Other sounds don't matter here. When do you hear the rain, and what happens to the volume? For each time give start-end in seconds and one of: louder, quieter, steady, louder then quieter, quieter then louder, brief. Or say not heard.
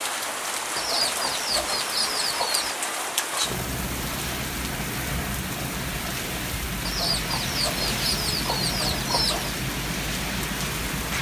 0.0-11.1 steady.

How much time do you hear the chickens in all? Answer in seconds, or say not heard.
5 s.